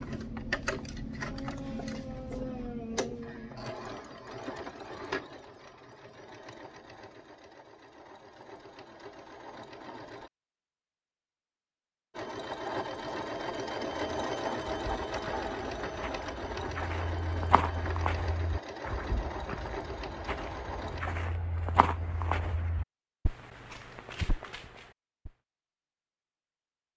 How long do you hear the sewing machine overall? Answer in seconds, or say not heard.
19 s.